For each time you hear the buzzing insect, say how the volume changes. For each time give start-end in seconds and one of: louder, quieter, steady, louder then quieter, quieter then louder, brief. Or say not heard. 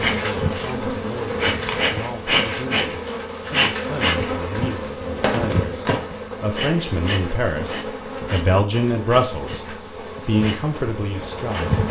0.0-11.8 quieter.